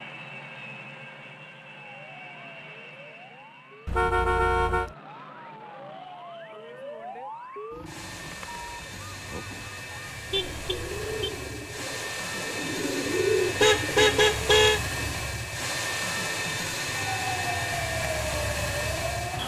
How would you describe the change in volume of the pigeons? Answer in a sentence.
The volume of the pigeons goes up, then down.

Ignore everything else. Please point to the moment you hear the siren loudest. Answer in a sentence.
The volume of the siren peaks at 18 seconds.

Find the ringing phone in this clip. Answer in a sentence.
You can't hear the ringing phone here.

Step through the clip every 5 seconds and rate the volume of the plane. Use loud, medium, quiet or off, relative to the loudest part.
quiet, quiet, loud, loud.